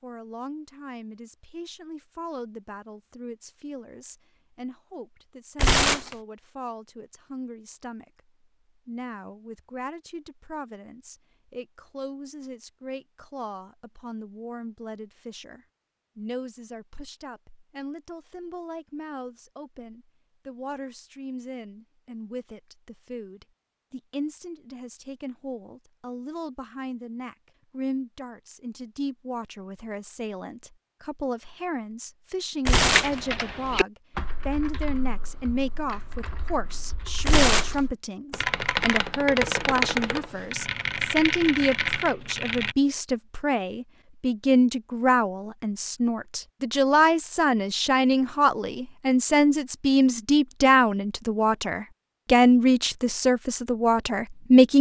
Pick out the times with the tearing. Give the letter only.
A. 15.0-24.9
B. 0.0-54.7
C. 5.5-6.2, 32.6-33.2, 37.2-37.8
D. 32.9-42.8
C.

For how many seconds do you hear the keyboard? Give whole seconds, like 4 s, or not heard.
10 s.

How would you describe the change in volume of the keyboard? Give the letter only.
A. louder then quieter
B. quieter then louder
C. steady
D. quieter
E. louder
B.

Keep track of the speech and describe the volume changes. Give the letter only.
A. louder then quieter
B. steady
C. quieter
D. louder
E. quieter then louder
D.